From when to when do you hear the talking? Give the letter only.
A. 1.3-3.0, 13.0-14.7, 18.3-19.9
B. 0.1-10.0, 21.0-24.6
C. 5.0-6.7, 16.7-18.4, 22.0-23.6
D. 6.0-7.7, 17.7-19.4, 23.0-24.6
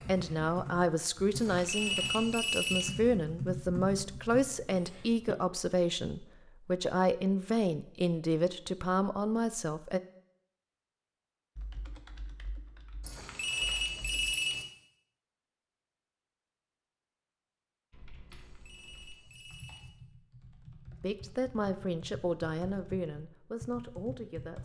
B.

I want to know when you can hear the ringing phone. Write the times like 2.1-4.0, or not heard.
1.3-3.0, 13.0-14.7, 18.3-19.9.